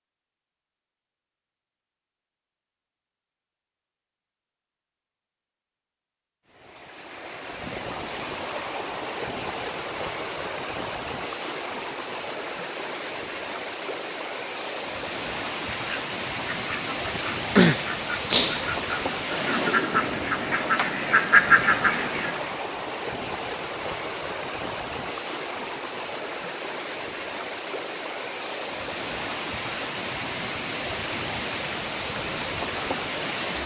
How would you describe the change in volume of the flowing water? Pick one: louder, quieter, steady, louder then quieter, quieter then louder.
steady.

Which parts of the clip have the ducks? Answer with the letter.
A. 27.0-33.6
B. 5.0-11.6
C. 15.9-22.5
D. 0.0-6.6
C.